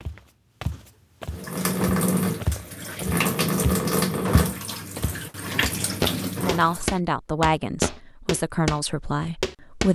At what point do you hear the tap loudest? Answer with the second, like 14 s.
4 s.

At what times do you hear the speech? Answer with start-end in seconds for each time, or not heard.
6.3-9.9.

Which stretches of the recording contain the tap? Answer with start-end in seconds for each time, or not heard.
1.3-6.9.